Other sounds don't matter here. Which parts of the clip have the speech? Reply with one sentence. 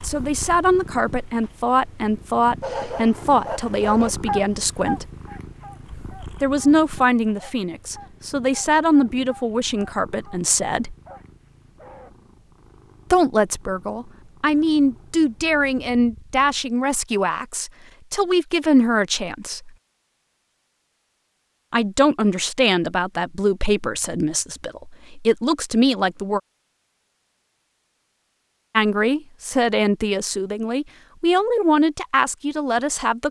The speech can be heard from 0.0 to 5.1 s, from 6.4 to 10.9 s, from 13.1 to 19.7 s, from 21.7 to 26.4 s and from 28.8 to 33.2 s.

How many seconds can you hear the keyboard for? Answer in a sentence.
You can't hear the keyboard here.